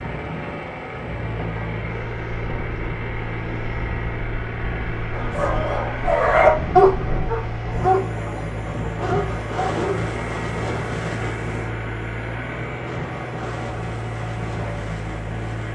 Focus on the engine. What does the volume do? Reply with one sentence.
The volume of the engine stays about the same.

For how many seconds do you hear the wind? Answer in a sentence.
The wind can be heard for 16 seconds in total.